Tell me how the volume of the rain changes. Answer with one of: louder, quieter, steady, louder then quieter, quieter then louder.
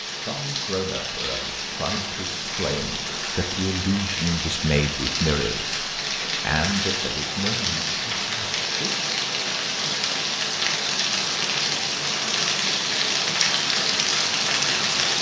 louder.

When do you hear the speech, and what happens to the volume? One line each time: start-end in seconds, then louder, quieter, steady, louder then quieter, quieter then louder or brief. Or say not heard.
0.1-8.9 louder then quieter.